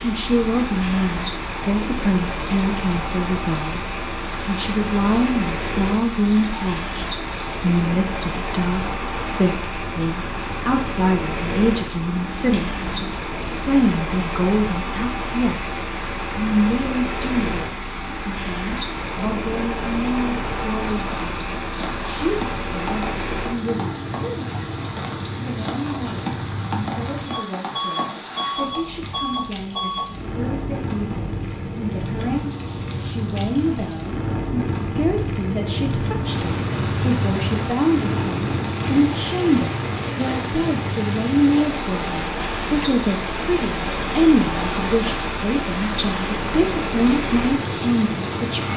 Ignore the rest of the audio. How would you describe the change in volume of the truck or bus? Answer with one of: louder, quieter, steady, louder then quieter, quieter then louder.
steady.